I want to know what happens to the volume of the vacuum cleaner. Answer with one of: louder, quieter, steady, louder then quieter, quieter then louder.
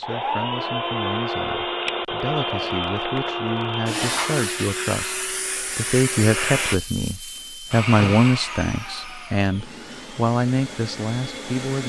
quieter.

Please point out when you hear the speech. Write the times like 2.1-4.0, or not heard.
0.0-11.8.